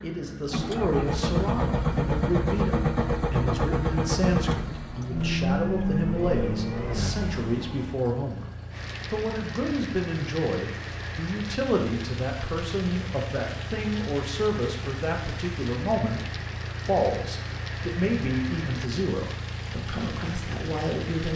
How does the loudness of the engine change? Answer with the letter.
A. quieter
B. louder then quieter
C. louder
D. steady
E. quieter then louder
A.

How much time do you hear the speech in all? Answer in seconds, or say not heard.
21 s.